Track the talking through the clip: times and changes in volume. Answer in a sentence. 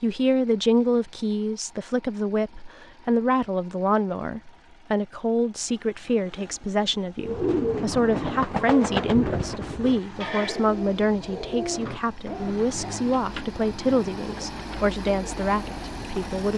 You can hear the talking from 0.0 to 16.5 s, at a steady volume.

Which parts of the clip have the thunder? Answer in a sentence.
The thunder can't be heard in this clip.